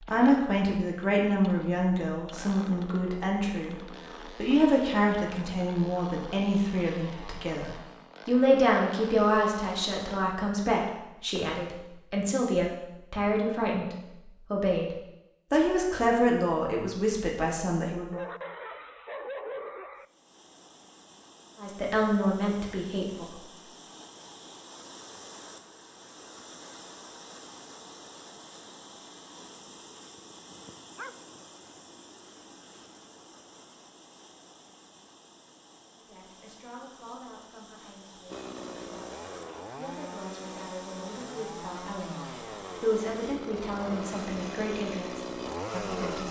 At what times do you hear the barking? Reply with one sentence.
You can hear the barking from 18.1 to 20.1 s and from 30.1 to 31.8 s.